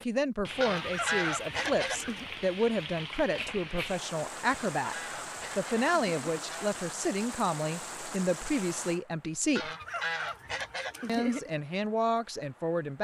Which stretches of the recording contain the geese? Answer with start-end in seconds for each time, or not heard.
0.6-2.2, 4.5-6.8, 9.6-11.5.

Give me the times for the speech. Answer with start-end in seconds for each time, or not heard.
0.1-5.0, 5.5-9.7, 11.1-13.0.